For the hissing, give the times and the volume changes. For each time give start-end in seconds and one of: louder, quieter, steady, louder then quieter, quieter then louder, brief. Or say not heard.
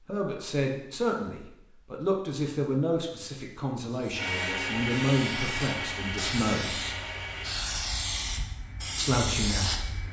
3.9-10.0 louder.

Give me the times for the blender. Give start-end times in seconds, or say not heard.
4.2-7.5.